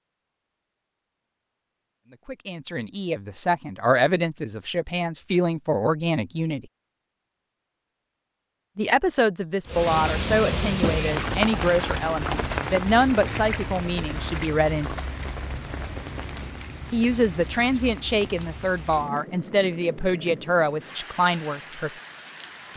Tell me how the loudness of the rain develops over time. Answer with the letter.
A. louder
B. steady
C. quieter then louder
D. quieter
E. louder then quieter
D.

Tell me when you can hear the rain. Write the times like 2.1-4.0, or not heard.
9.7-22.7.